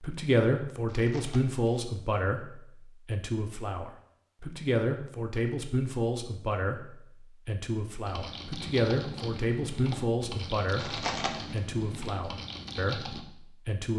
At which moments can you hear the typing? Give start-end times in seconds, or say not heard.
8.1-13.2.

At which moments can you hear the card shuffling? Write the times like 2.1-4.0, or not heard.
0.8-1.6, 10.8-11.6.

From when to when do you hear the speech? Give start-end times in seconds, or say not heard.
0.0-13.9.